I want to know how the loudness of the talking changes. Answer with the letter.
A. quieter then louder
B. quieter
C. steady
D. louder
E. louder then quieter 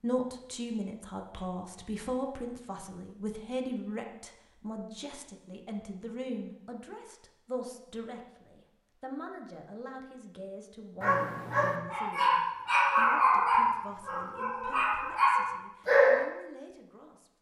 B.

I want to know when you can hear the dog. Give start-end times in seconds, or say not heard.
11.0-16.2.